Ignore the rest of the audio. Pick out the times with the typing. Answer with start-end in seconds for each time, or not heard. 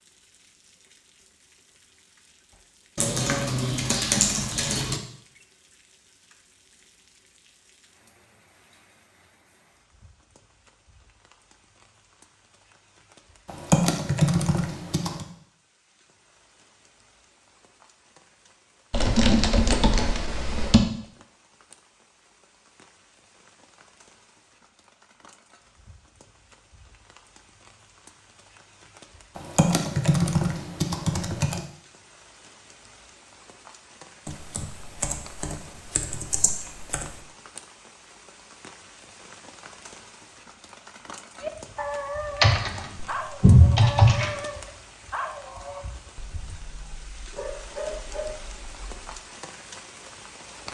3.0-5.0, 13.4-15.2, 18.9-20.8, 29.4-31.6, 34.2-37.2, 42.4-44.4.